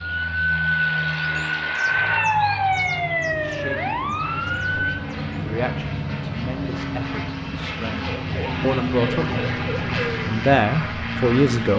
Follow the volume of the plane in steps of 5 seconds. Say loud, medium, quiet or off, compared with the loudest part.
medium, loud, loud.